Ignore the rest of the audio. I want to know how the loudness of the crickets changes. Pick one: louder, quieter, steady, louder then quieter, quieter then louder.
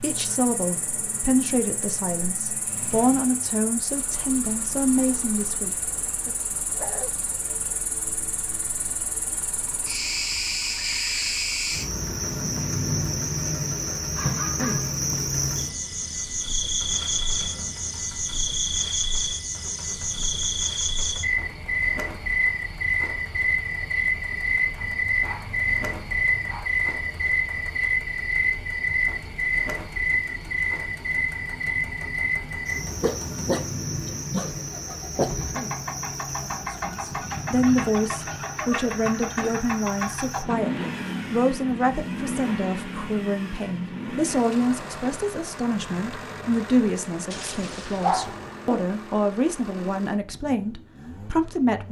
louder then quieter.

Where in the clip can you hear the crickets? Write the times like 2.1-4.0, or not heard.
0.0-40.5.